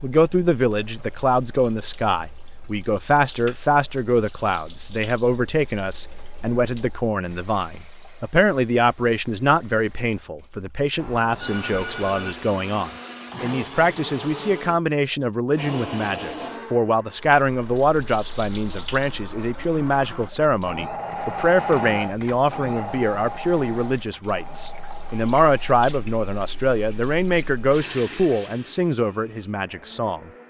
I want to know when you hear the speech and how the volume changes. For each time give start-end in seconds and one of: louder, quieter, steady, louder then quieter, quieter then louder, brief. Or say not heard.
0.0-30.3 steady.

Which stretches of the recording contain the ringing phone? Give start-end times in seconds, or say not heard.
10.9-12.3.